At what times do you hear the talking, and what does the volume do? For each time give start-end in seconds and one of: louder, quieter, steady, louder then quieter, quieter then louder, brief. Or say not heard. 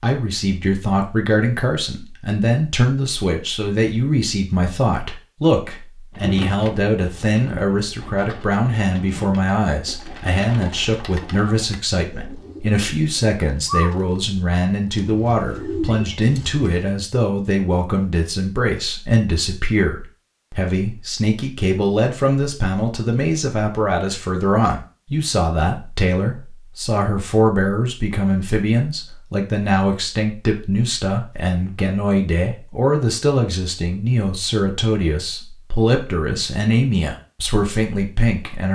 0.0-38.6 steady.